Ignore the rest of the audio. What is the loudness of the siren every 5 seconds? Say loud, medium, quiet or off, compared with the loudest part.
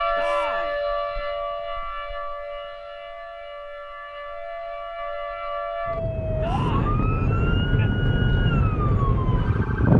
medium, loud.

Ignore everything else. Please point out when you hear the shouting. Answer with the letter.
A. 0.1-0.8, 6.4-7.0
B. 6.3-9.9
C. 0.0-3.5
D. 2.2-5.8
A.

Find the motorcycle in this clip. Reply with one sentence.
The motorcycle can be heard from 6.3 to 9.9 s.